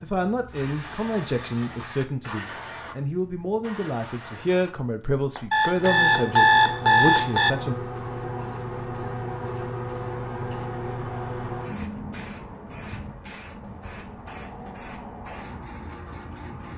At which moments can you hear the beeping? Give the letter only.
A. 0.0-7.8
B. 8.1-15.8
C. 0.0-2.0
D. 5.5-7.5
D.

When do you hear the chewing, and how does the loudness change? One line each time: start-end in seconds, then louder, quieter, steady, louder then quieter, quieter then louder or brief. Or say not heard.
not heard.